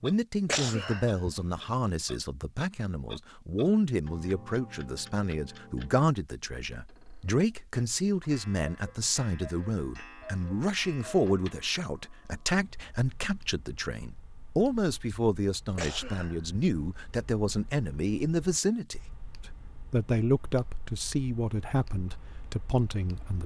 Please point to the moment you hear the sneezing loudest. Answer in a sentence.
The volume of the sneezing peaks at 1 second.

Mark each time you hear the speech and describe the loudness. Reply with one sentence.
The speech can be heard from 0.0 to 23.4 s, at a steady volume.